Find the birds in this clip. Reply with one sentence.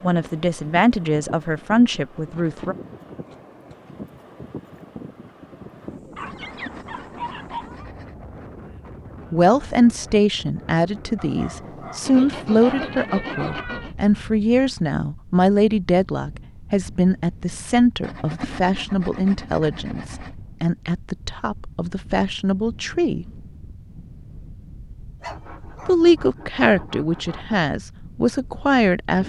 You can't hear the birds here.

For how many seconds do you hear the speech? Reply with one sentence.
You can hear the speech for 20 seconds altogether.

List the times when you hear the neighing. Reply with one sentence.
You can't hear the neighing here.